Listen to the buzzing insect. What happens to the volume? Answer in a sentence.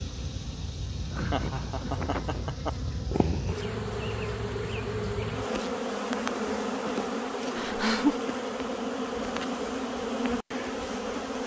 The loudness of the buzzing insect goes up.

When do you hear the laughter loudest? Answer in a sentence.
The volume of the laughter peaks at 8 seconds.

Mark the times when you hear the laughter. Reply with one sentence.
The laughter can be heard from 1.1 to 2.9 s and from 7.5 to 8.2 s.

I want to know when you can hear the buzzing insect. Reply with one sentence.
You can hear the buzzing insect from 0.0 to 11.4 s.